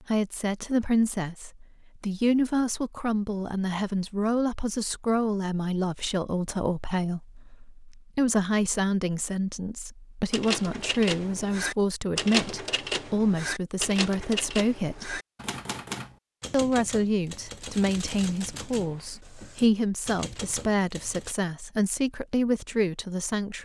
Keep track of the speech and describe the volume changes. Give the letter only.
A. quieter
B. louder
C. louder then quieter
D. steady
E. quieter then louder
D.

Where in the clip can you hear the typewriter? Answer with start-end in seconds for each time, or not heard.
10.3-21.4.